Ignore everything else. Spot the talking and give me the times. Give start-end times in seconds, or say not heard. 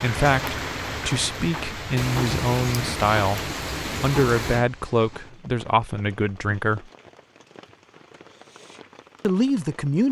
0.0-6.9, 9.2-10.0.